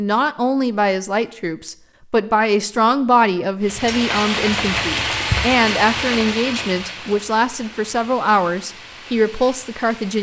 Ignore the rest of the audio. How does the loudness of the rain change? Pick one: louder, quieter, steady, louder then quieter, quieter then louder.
quieter.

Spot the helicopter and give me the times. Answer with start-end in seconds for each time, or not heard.
not heard.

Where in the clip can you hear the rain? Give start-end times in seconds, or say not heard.
3.6-10.1.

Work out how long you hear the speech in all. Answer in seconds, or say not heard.
10 s.